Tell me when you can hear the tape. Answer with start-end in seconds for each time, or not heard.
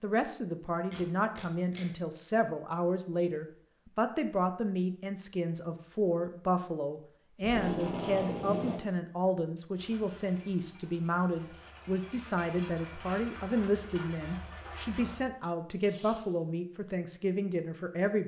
0.9-1.9, 7.4-8.8, 15.7-16.4.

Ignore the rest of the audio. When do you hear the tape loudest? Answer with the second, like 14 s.
8 s.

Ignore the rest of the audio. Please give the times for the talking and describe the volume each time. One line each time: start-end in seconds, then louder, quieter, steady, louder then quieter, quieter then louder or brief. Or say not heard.
0.0-18.2 steady.